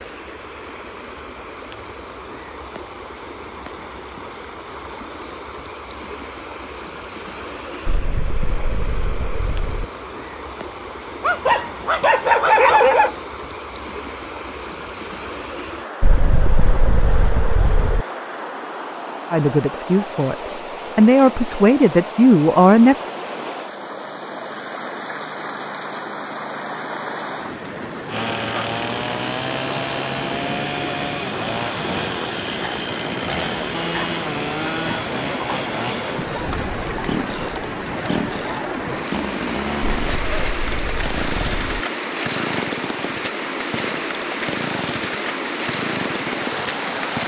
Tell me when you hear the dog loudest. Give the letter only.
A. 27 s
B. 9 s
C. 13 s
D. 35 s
C.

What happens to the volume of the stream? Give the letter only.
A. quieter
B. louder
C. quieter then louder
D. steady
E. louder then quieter
B.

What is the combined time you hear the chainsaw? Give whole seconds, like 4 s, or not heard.
19 s.